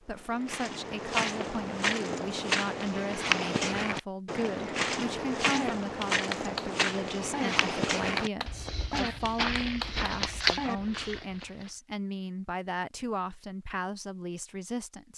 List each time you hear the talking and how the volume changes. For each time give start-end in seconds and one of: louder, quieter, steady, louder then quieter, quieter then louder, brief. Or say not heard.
0.0-15.1 steady.